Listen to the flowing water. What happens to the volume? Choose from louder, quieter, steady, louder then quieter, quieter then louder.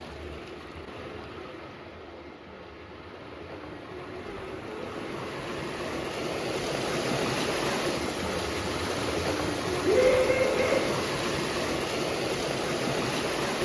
louder.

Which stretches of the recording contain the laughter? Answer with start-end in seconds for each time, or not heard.
9.8-10.9.